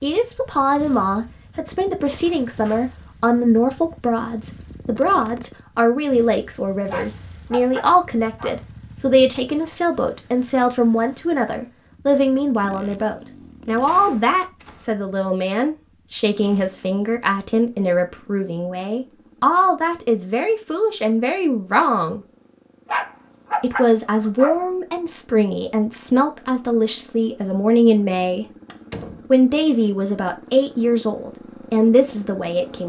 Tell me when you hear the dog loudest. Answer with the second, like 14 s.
24 s.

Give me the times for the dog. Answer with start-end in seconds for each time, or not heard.
6.8-8.6, 22.9-24.6.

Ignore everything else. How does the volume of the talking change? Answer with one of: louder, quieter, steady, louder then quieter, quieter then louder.
steady.